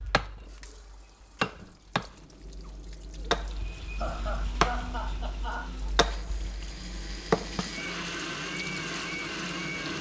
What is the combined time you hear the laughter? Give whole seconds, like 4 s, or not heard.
2 s.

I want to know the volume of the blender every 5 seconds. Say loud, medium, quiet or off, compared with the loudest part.
medium, loud.